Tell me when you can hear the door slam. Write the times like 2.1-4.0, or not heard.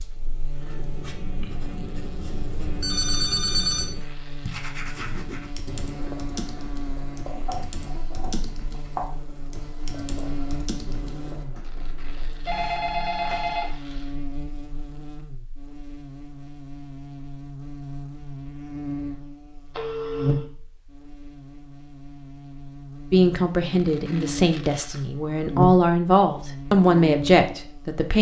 not heard.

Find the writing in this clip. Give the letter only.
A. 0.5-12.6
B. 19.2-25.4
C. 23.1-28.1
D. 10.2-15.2
A.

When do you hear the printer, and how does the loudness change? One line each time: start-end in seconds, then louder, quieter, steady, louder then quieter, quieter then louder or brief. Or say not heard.
not heard.